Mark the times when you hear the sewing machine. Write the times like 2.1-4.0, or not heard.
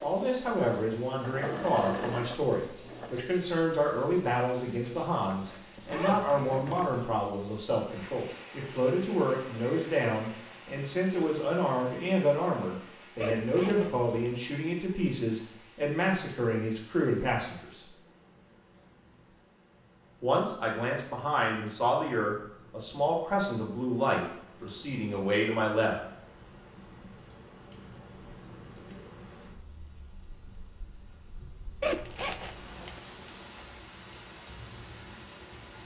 0.0-3.2.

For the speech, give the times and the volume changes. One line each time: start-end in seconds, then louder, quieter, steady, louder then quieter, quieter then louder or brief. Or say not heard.
0.0-17.9 steady
20.2-25.9 steady.